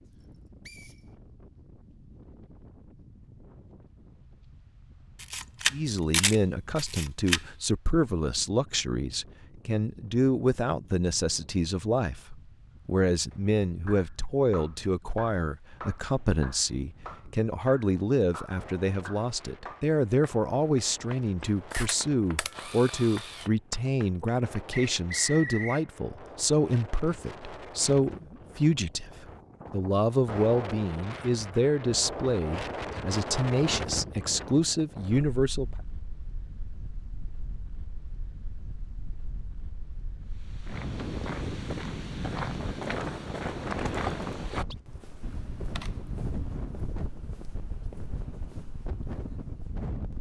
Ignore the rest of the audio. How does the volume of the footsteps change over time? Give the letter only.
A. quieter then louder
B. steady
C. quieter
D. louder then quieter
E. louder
C.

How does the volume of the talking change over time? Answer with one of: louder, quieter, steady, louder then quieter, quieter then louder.
steady.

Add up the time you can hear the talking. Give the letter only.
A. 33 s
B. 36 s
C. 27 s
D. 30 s
D.